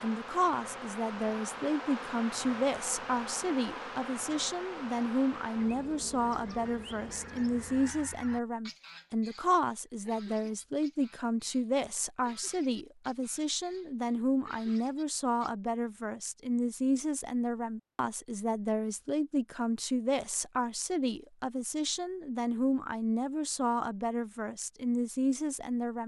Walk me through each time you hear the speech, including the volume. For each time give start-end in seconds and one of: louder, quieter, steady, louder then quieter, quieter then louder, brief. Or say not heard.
0.0-26.0 steady.